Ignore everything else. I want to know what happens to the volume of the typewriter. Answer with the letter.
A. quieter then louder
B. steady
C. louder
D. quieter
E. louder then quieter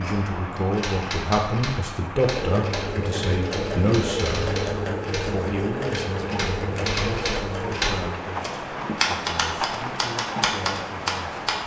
C.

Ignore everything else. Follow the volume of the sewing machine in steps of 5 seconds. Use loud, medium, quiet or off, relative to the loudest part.
loud, loud, off.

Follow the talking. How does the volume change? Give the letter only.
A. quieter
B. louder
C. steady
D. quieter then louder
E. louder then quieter
A.